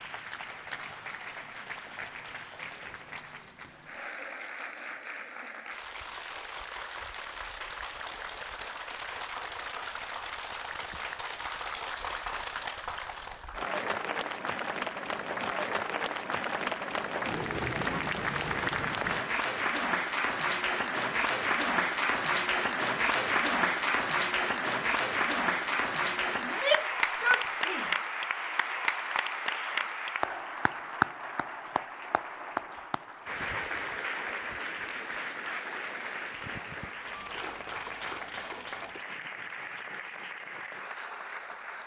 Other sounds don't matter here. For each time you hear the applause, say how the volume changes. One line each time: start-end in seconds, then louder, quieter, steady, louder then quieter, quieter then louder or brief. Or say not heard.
0.0-41.8 louder then quieter.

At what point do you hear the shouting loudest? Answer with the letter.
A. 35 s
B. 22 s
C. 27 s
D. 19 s
C.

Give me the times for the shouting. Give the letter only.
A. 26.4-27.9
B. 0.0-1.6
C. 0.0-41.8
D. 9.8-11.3
A.